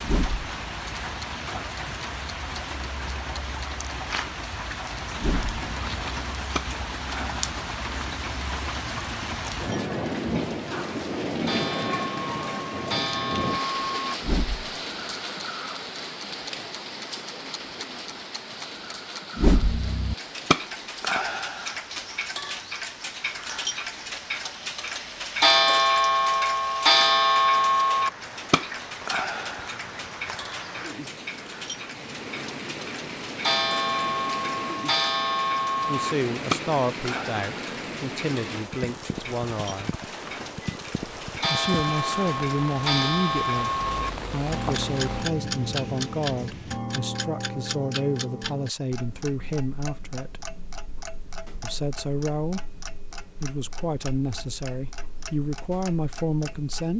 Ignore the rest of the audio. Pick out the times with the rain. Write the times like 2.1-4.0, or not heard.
0.0-46.8.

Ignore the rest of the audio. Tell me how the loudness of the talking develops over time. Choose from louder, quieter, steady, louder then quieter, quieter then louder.
steady.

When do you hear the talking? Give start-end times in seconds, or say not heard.
35.9-40.0, 41.5-50.5, 51.6-56.9.